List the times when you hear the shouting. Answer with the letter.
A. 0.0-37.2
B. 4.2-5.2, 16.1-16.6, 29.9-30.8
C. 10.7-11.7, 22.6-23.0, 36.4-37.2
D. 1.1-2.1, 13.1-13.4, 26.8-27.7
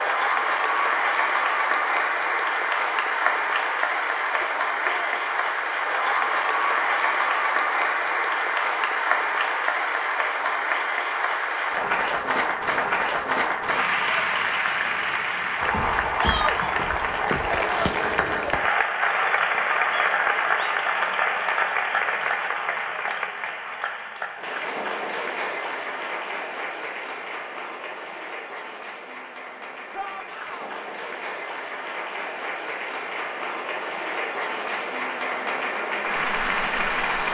B.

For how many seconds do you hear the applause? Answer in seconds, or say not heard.
37 s.